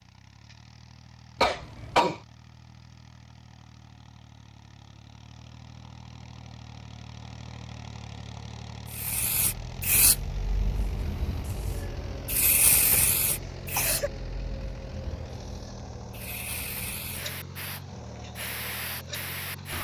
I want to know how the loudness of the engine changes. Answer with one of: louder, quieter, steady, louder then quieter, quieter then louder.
louder.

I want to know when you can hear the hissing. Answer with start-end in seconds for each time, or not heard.
8.8-19.7.